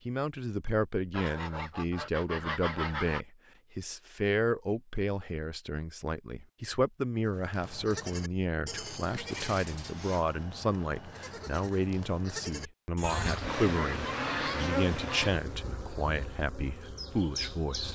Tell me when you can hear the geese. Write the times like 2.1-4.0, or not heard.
1.1-3.2, 13.0-15.3.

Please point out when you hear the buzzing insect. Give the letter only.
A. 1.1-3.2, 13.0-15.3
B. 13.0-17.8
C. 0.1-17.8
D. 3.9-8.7
B.